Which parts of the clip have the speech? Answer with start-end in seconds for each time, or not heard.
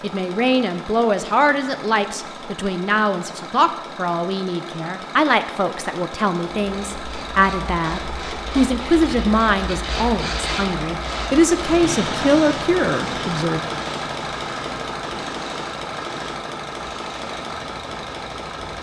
0.0-13.6.